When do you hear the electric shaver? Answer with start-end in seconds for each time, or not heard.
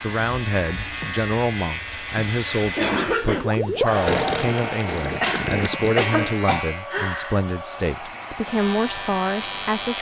0.0-6.9, 8.4-9.9.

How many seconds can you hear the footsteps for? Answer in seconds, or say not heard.
not heard.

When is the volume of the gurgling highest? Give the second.
4 s.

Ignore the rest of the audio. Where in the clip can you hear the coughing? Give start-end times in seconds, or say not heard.
2.8-3.5, 5.2-7.4.